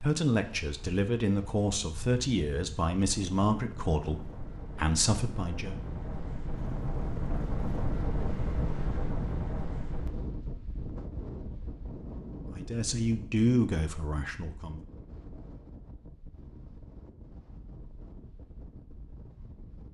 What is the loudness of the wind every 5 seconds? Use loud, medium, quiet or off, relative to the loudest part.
medium, loud, medium, quiet.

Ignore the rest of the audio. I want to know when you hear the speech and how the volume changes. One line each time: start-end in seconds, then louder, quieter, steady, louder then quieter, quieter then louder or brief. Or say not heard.
0.0-5.8 steady
12.6-14.8 brief.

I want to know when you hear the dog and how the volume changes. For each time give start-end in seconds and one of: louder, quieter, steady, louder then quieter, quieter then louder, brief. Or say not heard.
not heard.